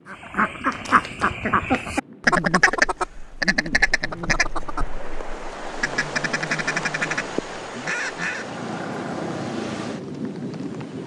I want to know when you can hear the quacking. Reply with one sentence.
You can hear the quacking from 0.1 to 8.4 s.